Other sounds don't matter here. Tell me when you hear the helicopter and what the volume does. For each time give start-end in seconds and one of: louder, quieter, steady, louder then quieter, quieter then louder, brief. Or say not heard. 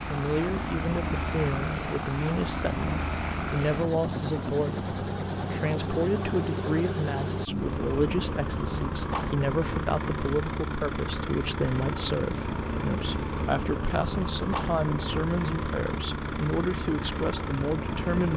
0.0-18.3 steady.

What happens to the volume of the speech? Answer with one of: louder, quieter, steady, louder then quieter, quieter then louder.
steady.